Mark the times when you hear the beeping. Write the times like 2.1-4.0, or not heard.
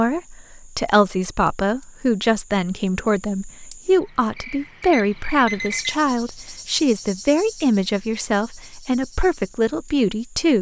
4.9-6.0.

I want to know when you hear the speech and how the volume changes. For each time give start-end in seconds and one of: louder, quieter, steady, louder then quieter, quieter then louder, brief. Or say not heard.
0.0-10.5 steady.